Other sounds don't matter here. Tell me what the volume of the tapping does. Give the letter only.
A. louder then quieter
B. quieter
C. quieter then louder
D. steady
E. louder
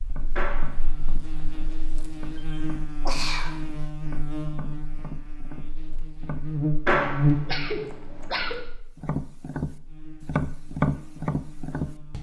E.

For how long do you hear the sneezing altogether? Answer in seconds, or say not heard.
2 s.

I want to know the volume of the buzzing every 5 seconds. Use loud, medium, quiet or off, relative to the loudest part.
medium, loud, quiet.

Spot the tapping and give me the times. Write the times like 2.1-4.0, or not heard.
0.0-6.5, 8.9-12.1.